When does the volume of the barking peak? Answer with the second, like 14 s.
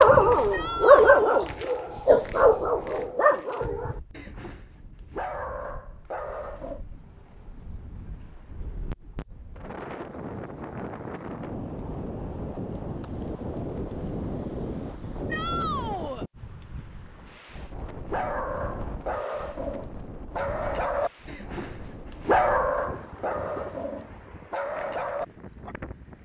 1 s.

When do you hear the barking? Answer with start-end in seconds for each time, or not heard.
0.0-6.8, 18.1-25.8.